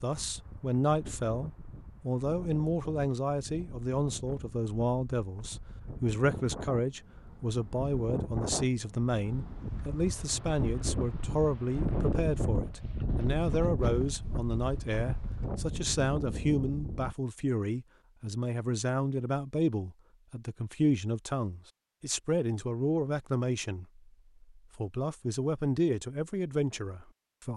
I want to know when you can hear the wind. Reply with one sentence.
You can hear the wind from 0.0 to 17.1 s.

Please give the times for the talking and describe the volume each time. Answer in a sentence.
The talking can be heard from 0.0 to 27.5 s, at a steady volume.